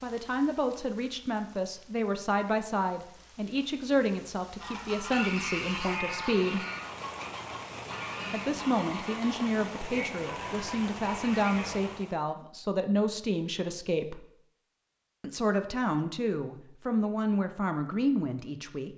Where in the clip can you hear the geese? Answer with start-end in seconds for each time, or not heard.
4.6-12.1.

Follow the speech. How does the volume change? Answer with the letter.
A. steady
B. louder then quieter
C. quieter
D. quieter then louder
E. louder
A.